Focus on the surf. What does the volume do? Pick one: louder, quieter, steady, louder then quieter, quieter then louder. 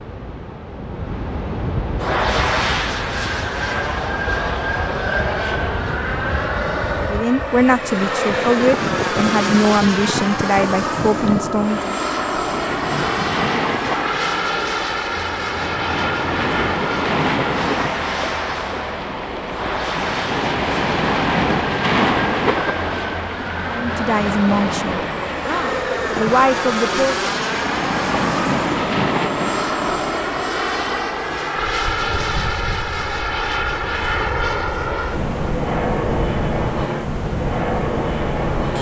louder then quieter.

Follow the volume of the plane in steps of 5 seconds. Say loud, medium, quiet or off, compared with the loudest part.
loud, loud, loud, loud, medium, loud, loud, loud.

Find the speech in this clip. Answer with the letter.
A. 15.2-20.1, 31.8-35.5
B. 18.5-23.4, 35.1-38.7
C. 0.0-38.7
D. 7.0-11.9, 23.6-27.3
D.